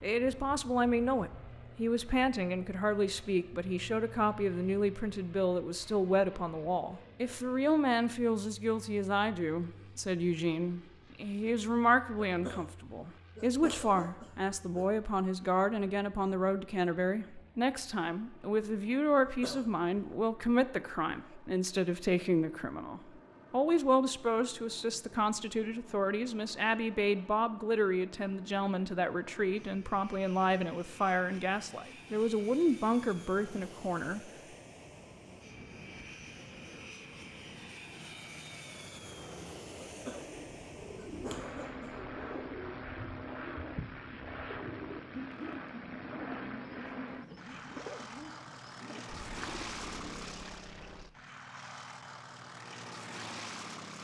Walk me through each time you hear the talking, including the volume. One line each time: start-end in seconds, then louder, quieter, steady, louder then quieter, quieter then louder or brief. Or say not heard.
0.0-34.3 steady.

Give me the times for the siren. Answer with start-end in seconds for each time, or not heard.
not heard.